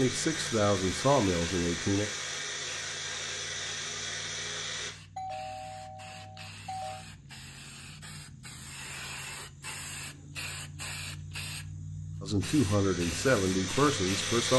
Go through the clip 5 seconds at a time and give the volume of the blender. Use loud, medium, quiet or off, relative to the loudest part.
loud, off, loud.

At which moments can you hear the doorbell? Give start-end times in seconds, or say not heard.
5.2-7.0.